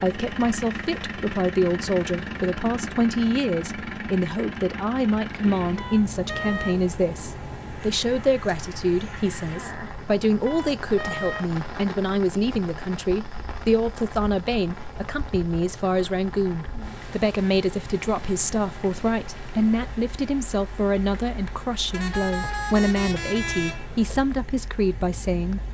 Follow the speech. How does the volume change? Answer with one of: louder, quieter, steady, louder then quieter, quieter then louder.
steady.